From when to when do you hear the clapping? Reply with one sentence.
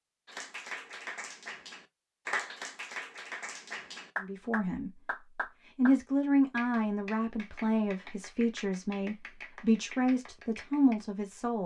You can hear the clapping from 0.2 to 6.0 s and from 6.5 to 10.9 s.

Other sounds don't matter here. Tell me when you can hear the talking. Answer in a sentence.
The talking can be heard from 4.2 to 5.0 s and from 5.8 to 11.6 s.